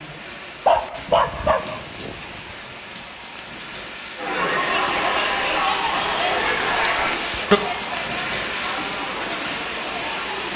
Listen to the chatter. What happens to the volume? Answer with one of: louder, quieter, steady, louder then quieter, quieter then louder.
quieter.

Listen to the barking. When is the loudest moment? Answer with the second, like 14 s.
1 s.